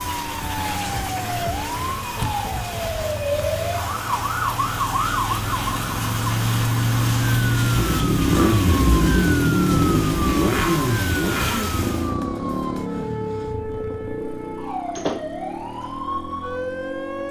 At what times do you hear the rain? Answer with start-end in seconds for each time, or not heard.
0.0-12.2.